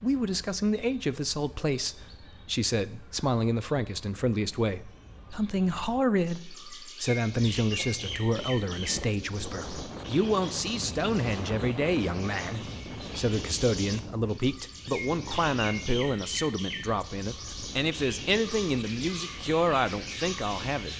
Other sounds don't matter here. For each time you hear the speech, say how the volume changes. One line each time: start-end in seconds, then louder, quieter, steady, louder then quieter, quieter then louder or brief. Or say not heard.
0.0-20.9 steady.